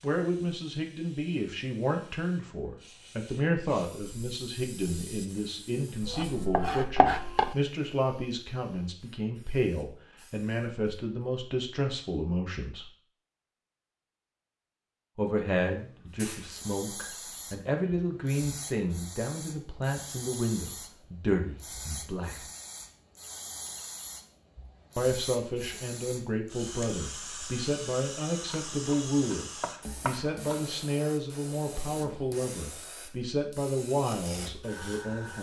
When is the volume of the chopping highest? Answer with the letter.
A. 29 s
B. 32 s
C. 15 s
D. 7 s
D.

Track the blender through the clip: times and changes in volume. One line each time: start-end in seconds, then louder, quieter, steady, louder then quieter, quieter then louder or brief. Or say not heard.
not heard.